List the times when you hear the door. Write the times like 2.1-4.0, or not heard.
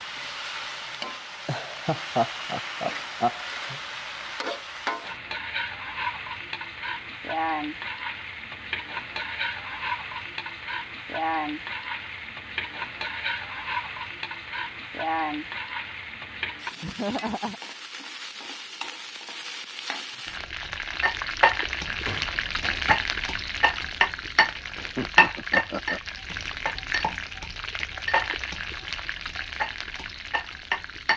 21.6-23.0.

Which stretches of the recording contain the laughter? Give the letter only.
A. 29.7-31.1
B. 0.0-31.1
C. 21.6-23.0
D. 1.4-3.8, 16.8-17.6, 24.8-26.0
D.